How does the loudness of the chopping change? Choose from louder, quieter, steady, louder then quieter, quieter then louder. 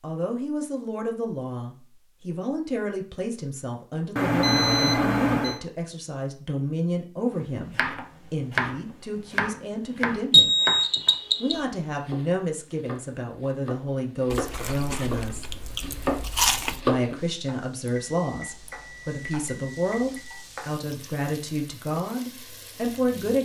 quieter then louder.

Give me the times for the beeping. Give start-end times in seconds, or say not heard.
4.2-5.6, 10.3-11.6, 18.1-20.4.